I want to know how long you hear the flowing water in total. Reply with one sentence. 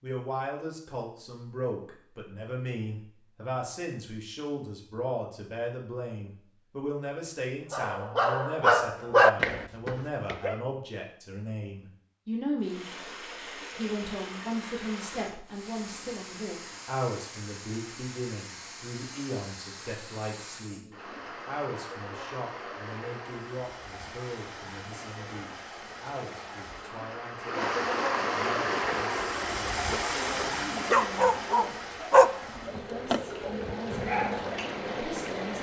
The flowing water can be heard for 23 seconds in total.